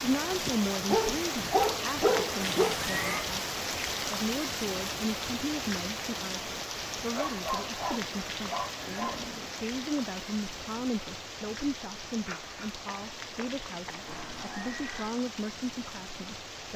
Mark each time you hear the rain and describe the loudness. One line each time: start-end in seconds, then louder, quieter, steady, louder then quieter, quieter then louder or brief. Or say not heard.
0.0-16.7 quieter.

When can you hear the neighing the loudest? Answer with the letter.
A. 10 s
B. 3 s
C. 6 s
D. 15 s
B.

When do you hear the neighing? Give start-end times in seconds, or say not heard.
2.4-3.3, 8.8-9.6, 14.1-15.2.